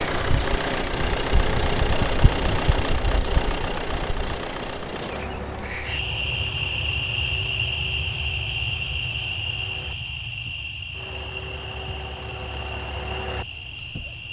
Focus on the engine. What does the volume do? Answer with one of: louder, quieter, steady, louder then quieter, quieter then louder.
quieter then louder.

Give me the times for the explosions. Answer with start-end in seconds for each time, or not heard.
4.7-5.8.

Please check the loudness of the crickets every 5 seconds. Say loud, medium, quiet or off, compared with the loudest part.
medium, loud, medium.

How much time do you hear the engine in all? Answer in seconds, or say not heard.
14 s.